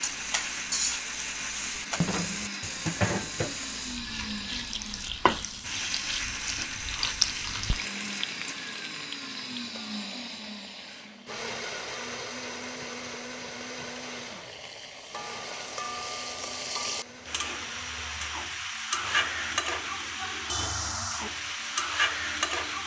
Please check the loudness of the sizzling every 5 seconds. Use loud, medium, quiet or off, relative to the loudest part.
loud, loud, quiet, loud, loud.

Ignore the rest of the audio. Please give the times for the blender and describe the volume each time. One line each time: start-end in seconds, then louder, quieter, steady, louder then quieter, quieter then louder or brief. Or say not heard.
0.0-22.8 quieter.